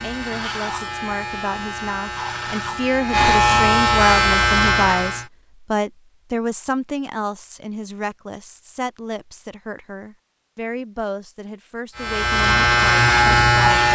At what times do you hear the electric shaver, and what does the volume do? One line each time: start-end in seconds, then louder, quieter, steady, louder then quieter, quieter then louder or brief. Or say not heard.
0.0-5.2 louder
11.9-13.9 brief.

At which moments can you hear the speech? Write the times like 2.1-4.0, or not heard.
0.0-13.9.